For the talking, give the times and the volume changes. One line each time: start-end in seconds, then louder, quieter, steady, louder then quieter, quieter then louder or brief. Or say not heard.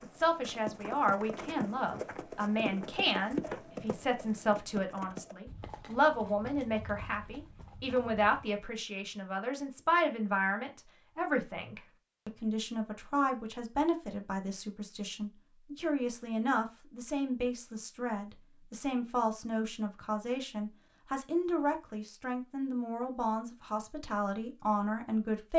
0.0-25.5 steady.